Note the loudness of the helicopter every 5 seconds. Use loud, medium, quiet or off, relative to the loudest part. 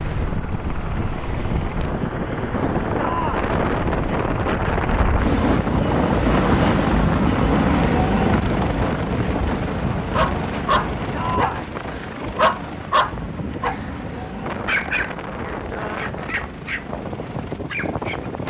medium, loud, medium, quiet.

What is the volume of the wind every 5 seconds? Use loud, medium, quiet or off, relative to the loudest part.
loud, loud, medium, medium.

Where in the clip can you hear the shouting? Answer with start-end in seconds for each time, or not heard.
3.0-3.5, 11.1-11.8.